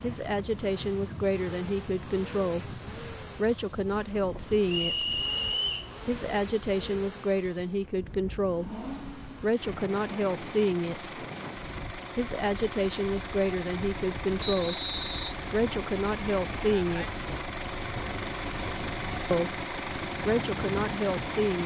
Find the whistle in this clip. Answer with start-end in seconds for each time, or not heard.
4.7-5.9, 14.4-15.3.